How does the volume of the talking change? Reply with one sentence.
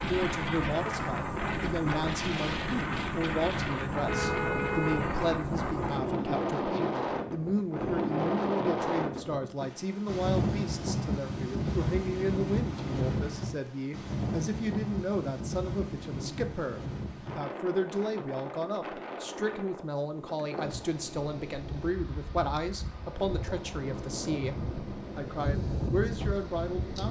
The loudness of the talking stays about the same.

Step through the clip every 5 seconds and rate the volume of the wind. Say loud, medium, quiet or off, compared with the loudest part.
loud, loud, loud, medium, medium, loud.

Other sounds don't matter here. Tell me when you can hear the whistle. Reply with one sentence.
You can't hear the whistle here.